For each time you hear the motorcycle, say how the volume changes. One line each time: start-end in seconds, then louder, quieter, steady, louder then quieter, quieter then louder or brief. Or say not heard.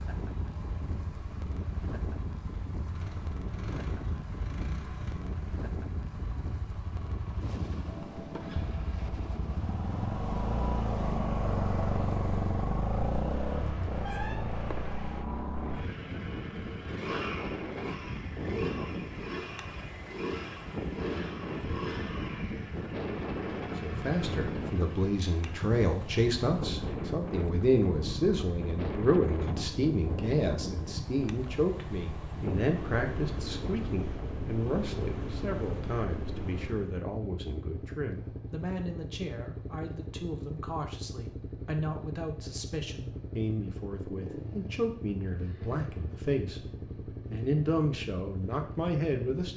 0.0-49.5 louder then quieter.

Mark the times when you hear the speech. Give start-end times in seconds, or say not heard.
23.8-46.6, 47.3-49.5.